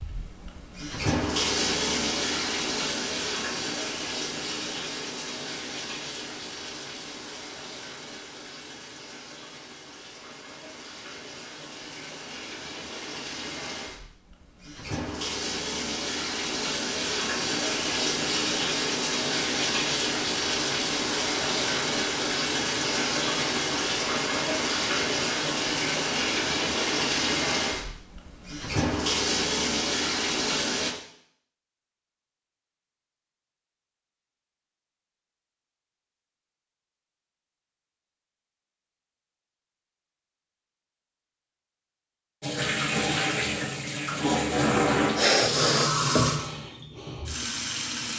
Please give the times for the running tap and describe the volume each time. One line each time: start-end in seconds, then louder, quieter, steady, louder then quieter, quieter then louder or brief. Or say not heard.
0.0-30.9 quieter then louder
42.4-48.1 quieter.